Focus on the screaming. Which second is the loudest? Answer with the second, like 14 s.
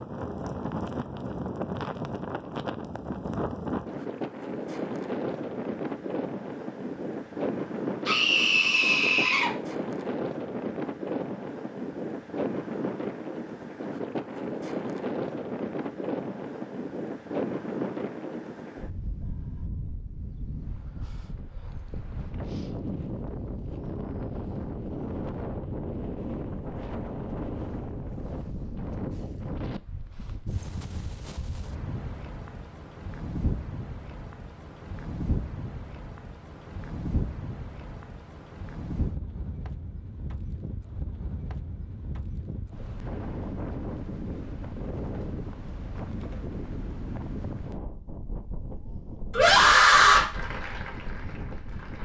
50 s.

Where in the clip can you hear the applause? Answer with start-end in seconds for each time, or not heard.
50.3-52.0.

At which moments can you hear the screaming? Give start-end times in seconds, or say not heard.
8.1-9.5, 49.3-50.2.